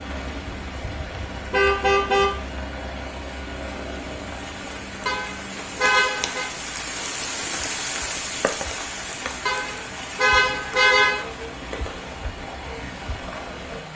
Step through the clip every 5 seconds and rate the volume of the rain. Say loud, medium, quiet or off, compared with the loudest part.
medium, loud, medium.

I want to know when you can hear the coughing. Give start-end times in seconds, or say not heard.
not heard.